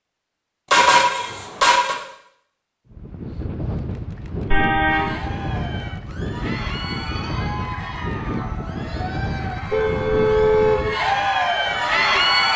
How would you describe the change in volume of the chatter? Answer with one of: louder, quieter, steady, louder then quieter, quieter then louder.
louder.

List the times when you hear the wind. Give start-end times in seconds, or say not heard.
2.9-12.5.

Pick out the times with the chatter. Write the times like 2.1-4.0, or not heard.
4.8-12.5.